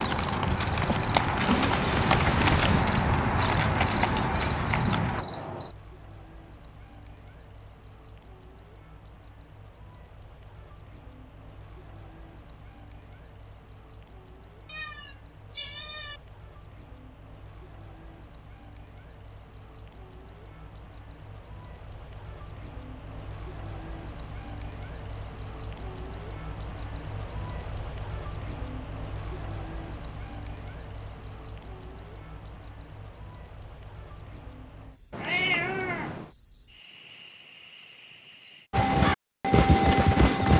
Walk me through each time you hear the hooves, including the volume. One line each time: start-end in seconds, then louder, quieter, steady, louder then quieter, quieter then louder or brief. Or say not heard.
0.0-5.2 steady
38.7-40.5 brief.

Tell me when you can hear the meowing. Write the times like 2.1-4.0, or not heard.
1.4-2.9, 14.7-16.2, 35.1-36.3.